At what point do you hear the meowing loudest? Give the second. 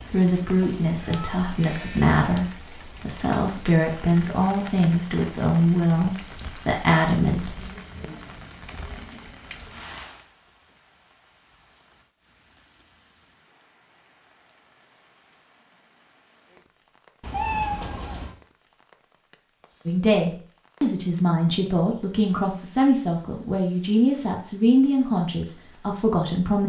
18 s.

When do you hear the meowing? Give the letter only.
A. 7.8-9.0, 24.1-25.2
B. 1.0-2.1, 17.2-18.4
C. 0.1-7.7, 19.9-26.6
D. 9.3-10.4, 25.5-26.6
B.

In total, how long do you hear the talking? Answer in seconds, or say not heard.
14 s.